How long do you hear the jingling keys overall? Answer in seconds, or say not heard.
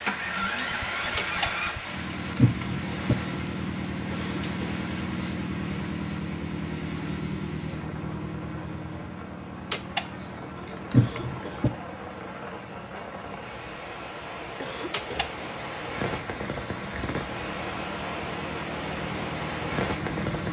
5 s.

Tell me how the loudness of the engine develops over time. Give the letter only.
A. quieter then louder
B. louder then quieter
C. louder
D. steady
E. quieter
A.